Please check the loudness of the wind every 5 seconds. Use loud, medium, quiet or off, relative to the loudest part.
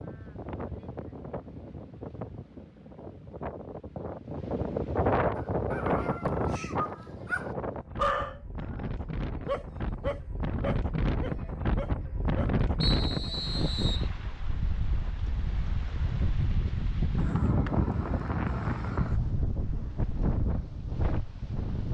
medium, loud, loud, loud, loud.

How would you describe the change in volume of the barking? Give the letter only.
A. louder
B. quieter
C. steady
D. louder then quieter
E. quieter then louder
D.